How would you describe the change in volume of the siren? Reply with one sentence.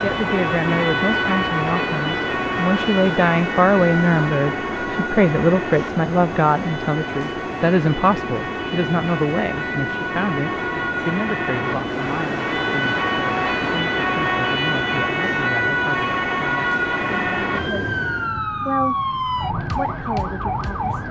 The volume of the siren goes down, then up.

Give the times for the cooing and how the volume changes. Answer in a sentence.
You can't hear the cooing here.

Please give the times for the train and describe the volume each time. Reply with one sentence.
The train can be heard from 0.0 to 18.4 s, at a steady volume.